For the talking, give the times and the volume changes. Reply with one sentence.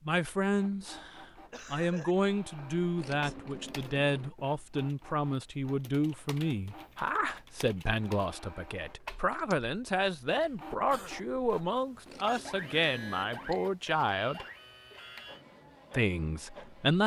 You can hear the talking from 0.1 to 14.4 s, at a steady volume; and briefly from 15.9 to 17.0 s.